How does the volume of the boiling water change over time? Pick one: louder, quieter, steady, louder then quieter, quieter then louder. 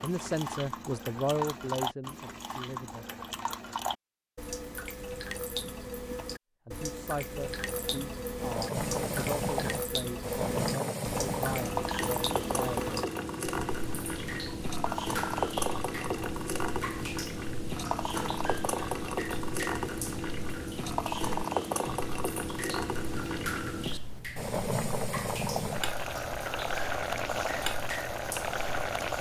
steady.